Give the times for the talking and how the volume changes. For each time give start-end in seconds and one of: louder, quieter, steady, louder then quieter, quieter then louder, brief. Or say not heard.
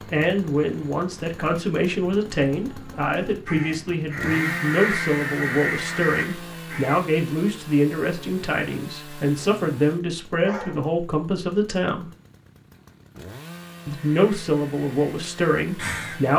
0.0-12.1 steady
13.8-16.3 brief.